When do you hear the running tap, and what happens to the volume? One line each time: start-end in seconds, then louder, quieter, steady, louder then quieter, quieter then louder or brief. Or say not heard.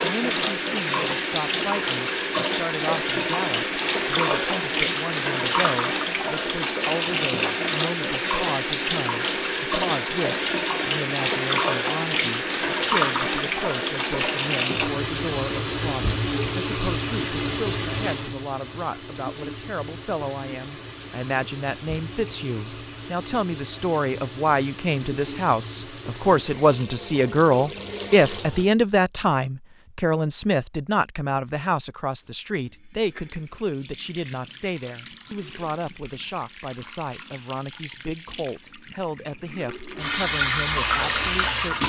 0.0-28.7 quieter
32.2-41.8 louder.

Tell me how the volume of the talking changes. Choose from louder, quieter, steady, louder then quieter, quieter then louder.
louder then quieter.